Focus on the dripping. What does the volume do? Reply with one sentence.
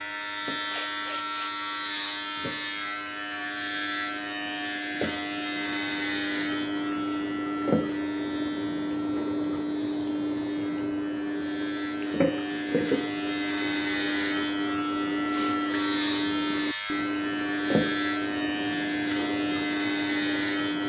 The loudness of the dripping goes up.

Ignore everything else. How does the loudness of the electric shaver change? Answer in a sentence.
The volume of the electric shaver goes down, then up.